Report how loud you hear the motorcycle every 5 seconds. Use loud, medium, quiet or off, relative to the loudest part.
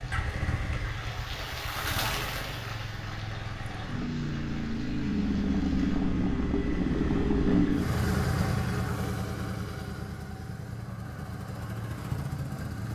medium, loud, medium.